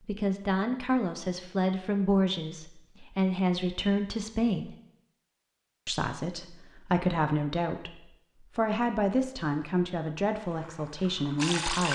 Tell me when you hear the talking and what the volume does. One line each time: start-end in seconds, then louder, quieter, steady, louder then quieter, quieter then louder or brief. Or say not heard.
0.1-4.8 steady
5.8-11.9 steady.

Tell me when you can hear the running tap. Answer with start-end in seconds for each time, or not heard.
10.3-11.9.